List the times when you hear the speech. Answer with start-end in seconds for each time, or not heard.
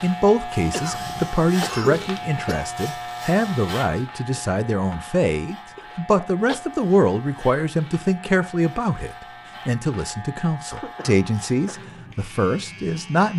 0.0-13.3.